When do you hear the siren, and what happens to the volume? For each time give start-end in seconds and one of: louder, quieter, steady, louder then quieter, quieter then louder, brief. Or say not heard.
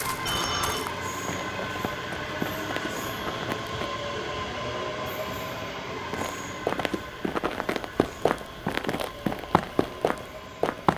not heard.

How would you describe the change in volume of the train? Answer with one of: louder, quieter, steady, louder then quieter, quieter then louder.
quieter.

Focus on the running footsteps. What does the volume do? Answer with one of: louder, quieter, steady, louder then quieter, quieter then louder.
louder.